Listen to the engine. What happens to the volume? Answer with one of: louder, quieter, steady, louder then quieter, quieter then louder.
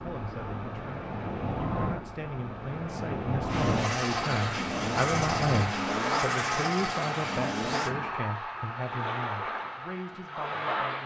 steady.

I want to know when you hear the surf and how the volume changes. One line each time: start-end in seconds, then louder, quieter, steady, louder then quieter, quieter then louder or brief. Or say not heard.
0.0-11.0 steady.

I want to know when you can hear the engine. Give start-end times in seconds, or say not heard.
3.5-8.0.